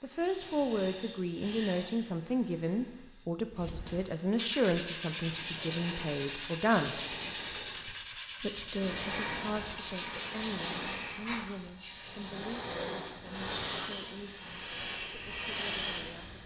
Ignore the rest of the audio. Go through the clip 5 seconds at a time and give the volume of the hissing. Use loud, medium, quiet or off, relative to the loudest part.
medium, loud, medium, medium.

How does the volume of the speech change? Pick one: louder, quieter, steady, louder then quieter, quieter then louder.
quieter.